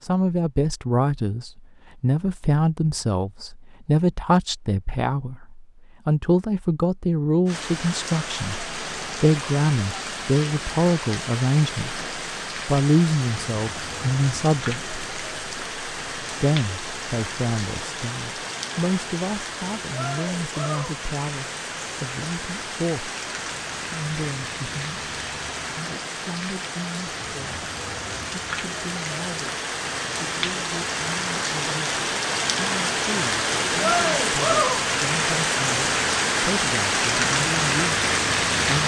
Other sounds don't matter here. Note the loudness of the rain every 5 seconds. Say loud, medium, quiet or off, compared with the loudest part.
off, medium, medium, medium, medium, medium, loud, loud.